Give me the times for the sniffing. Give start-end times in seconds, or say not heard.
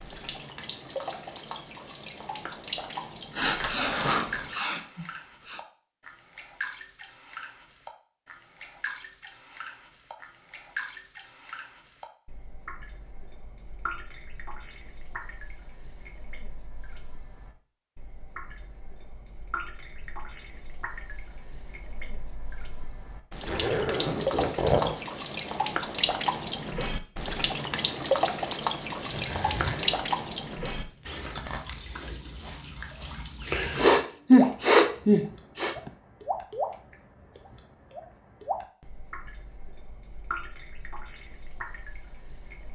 3.3-5.6, 33.8-35.8.